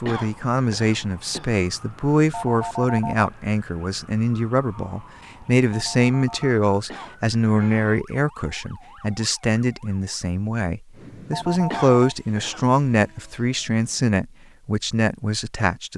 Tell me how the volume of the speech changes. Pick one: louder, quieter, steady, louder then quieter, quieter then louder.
steady.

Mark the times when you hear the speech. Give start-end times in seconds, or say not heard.
0.0-15.9.